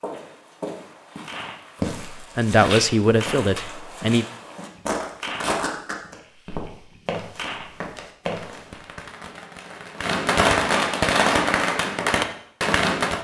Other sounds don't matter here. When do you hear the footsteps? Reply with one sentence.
You can hear the footsteps from 0.0 to 9.1 s.